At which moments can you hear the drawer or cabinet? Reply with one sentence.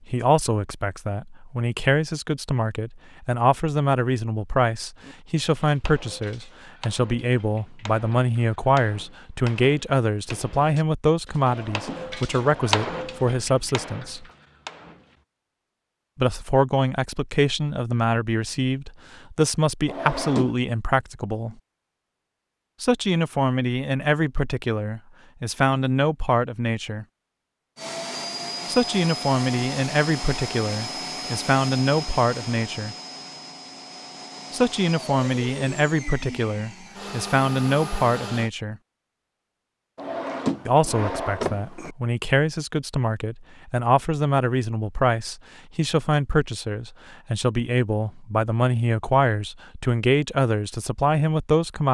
You can hear the drawer or cabinet from 11.4 to 13.0 s, from 19.9 to 20.5 s and from 40.0 to 41.9 s.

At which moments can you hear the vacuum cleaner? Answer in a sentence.
You can hear the vacuum cleaner from 27.8 to 38.5 s.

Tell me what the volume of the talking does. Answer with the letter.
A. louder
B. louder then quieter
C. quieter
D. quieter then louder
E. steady
E.